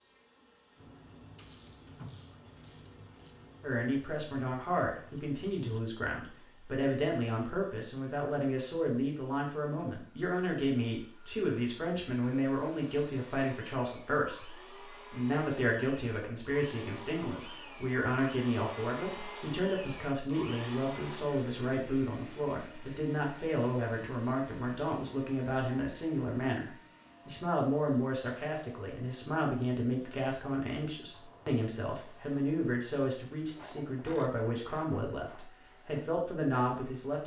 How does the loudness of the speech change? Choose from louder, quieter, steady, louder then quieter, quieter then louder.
steady.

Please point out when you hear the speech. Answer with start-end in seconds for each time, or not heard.
3.6-37.2.